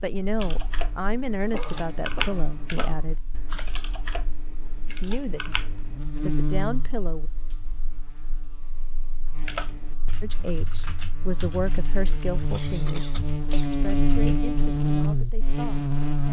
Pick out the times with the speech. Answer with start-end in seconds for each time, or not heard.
0.0-3.1, 4.8-7.3, 10.2-16.2.